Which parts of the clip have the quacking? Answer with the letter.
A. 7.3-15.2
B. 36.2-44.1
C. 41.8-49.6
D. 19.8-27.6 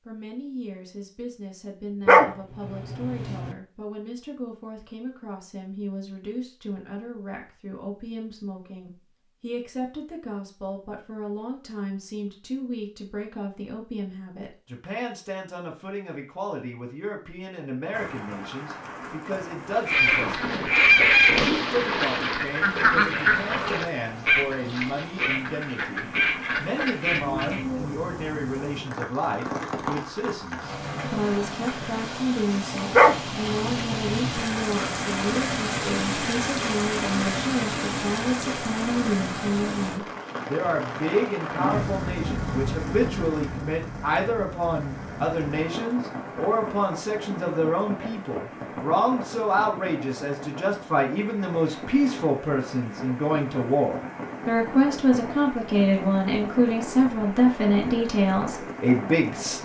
D.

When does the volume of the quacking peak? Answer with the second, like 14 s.
21 s.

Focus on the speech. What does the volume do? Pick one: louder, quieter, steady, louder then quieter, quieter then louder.
louder.